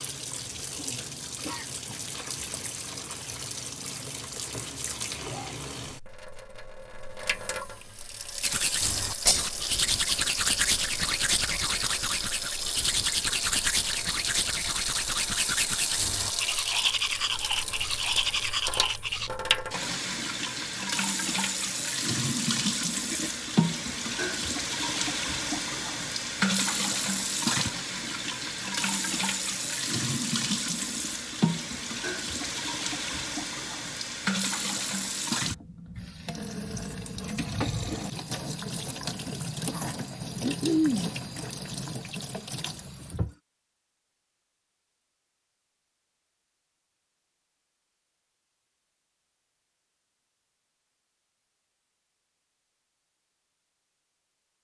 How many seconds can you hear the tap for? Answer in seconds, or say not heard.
43 s.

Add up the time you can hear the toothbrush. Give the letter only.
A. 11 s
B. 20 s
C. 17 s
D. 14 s
A.